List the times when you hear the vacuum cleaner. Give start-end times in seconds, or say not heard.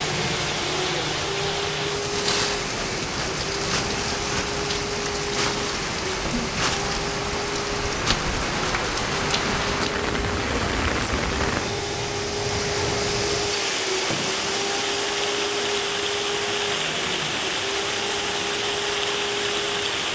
0.0-20.1.